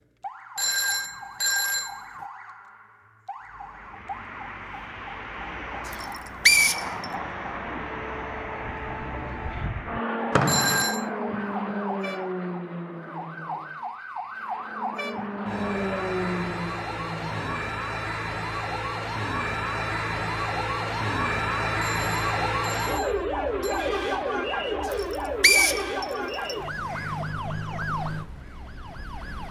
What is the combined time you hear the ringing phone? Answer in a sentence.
The ringing phone can be heard for 4 seconds in total.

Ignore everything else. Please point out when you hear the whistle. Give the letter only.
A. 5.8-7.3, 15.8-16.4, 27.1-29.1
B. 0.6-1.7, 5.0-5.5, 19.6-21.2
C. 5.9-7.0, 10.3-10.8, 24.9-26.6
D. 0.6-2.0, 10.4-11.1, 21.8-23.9
C.